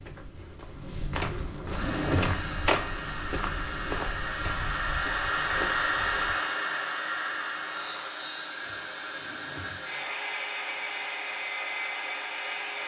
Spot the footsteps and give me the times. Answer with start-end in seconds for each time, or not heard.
0.0-6.3.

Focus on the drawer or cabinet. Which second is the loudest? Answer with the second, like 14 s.
2 s.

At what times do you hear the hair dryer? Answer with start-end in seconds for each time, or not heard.
1.7-12.8.